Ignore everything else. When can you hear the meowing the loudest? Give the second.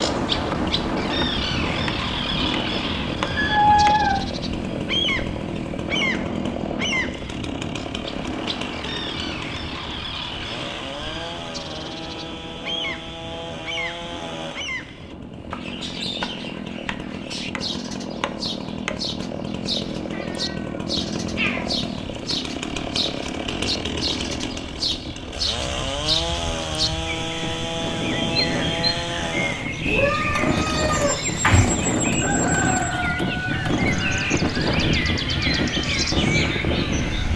4 s.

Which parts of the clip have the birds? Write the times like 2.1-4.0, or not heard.
0.0-37.3.